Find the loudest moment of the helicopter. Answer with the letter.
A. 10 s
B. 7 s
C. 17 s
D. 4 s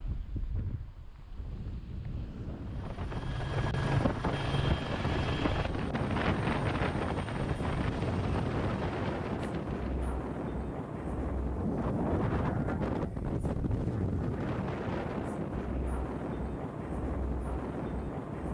D.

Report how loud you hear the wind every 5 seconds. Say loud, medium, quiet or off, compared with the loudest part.
medium, loud, loud, loud.